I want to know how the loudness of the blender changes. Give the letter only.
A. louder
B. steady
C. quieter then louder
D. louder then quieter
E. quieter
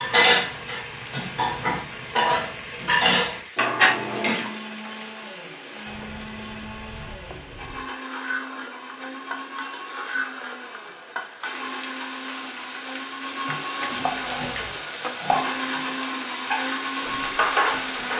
A.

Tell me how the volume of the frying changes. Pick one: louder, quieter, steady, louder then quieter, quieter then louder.
louder.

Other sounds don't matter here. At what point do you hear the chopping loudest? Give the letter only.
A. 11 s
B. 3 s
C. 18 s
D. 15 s
D.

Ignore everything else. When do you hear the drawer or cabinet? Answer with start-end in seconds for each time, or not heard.
13.8-14.8.